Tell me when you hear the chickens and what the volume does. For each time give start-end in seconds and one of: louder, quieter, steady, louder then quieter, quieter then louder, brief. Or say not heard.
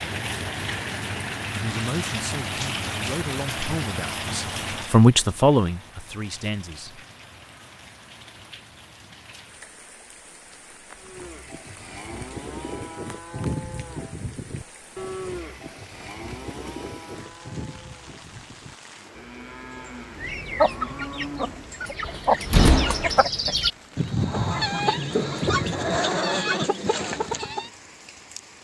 20.1-27.7 steady.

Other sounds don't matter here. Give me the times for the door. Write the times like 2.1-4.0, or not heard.
22.1-23.2.